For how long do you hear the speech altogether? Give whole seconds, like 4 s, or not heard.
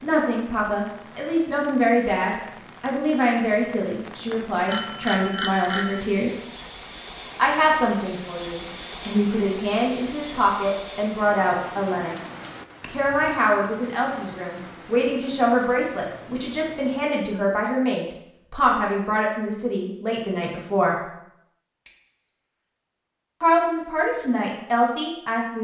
22 s.